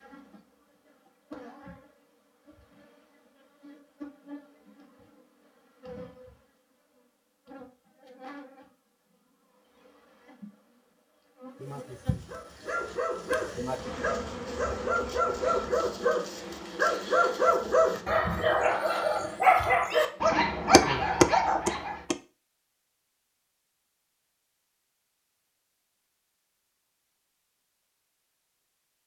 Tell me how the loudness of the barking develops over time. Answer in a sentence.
The loudness of the barking goes up.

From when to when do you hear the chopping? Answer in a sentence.
The chopping can be heard from 20.7 to 22.1 s.